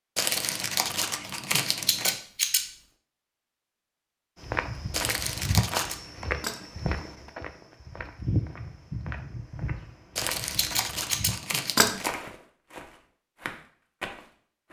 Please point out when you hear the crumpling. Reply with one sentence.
The crumpling can be heard from 0.1 to 2.1 s, from 4.9 to 6.0 s and from 10.2 to 12.2 s.